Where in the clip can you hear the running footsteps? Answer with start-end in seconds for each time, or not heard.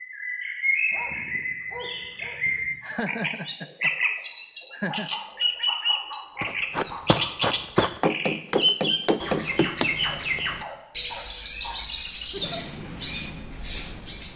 6.4-10.4.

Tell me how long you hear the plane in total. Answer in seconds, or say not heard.
2 s.